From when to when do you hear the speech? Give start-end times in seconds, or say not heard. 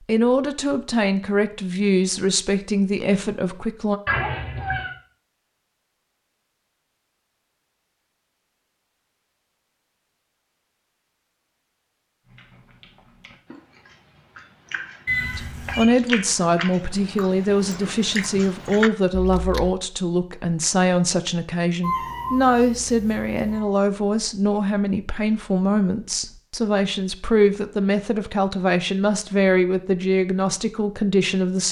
0.1-4.0, 15.3-31.6.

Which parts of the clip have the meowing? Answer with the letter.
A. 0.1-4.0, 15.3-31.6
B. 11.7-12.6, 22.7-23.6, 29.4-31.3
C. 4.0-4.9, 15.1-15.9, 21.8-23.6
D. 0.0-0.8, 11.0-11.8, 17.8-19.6
C.